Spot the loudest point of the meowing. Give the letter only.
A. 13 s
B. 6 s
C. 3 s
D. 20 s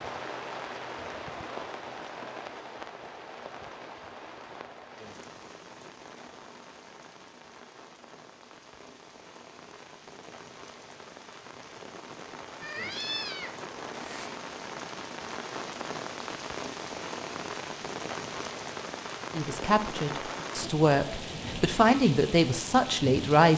A.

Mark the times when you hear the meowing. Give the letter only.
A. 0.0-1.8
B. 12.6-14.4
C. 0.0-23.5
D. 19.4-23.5
B.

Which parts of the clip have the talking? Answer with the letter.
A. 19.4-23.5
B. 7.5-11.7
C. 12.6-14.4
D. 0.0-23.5
A.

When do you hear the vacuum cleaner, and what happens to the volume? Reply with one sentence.
You can't hear the vacuum cleaner here.